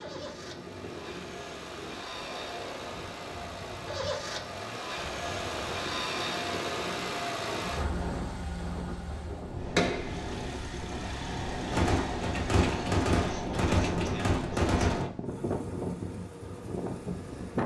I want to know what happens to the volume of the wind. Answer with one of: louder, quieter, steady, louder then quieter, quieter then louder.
louder.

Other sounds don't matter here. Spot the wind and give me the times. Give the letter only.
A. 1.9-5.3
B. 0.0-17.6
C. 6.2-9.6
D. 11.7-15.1
B.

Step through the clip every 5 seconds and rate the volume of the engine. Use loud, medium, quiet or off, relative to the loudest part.
medium, loud, medium, quiet.